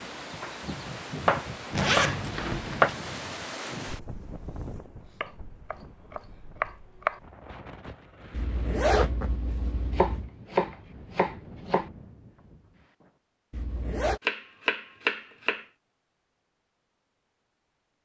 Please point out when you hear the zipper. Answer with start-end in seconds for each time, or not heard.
1.8-3.0, 8.3-10.3, 13.5-14.2.